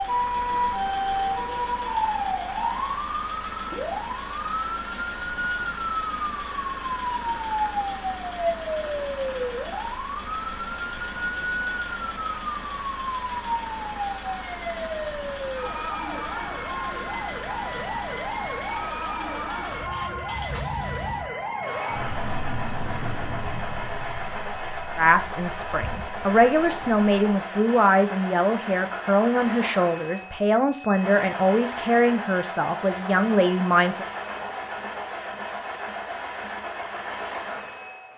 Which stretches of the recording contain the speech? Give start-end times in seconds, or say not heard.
24.9-34.0.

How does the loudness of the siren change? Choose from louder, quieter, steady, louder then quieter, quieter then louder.
quieter.